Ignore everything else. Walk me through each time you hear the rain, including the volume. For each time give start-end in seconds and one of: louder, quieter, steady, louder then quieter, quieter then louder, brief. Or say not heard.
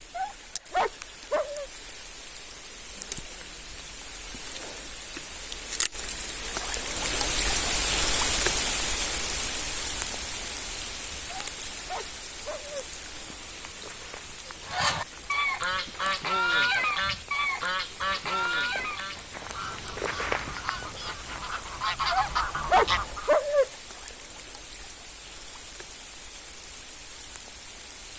0.0-28.1 louder then quieter.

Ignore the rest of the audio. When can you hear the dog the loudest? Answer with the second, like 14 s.
23 s.